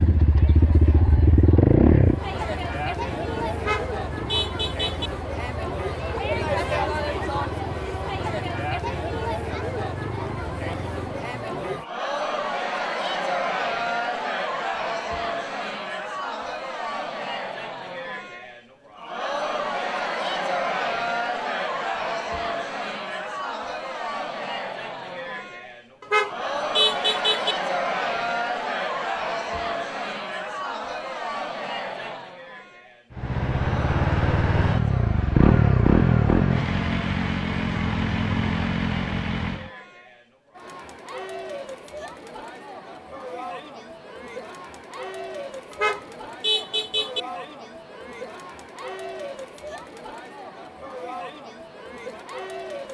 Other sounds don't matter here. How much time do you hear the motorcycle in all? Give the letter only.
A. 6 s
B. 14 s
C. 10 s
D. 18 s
D.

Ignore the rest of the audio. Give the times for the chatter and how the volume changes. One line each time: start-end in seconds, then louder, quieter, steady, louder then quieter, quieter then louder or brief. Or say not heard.
0.0-52.9 quieter.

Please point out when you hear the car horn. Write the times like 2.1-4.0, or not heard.
3.5-5.1, 26.0-27.6, 45.7-47.2.